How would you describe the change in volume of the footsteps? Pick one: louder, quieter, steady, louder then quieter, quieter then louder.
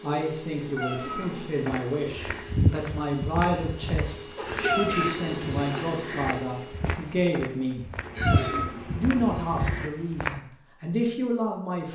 quieter then louder.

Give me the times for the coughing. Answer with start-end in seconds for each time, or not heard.
1.1-1.5, 4.3-6.0, 8.1-8.8.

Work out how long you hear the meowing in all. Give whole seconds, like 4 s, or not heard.
6 s.